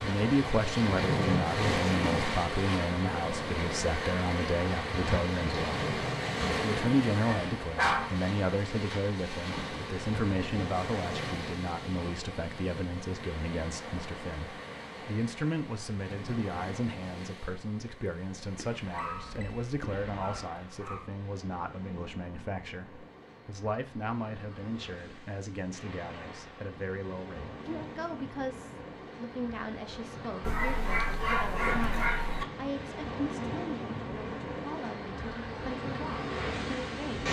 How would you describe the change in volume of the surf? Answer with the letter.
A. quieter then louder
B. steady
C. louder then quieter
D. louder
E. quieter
A.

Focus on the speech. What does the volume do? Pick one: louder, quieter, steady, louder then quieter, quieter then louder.
quieter.